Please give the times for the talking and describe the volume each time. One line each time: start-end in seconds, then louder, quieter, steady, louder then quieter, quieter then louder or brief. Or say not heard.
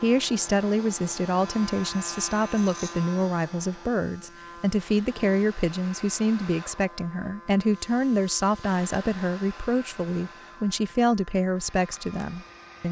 0.0-12.8 steady.